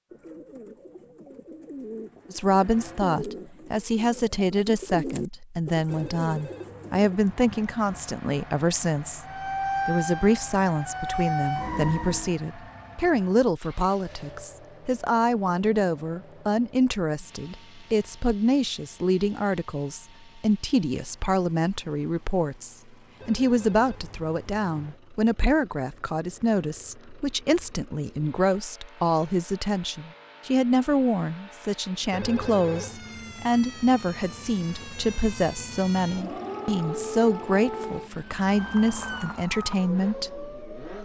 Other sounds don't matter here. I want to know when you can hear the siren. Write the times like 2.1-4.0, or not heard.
9.2-12.3, 32.6-40.9.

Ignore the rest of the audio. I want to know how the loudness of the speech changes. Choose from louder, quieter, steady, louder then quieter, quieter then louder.
steady.